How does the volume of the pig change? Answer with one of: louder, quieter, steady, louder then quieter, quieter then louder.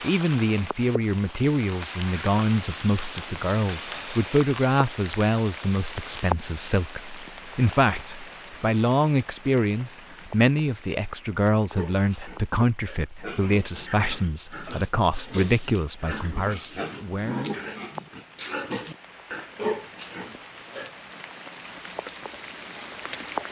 louder.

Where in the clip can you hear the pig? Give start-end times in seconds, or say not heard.
11.7-20.9.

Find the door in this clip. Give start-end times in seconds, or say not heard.
not heard.